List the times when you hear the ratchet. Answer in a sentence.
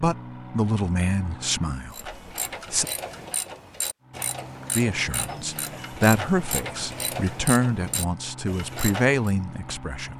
The ratchet can be heard from 1.9 to 9.3 s.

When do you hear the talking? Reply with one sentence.
You can hear the talking from 0.0 to 2.9 s and from 4.8 to 10.1 s.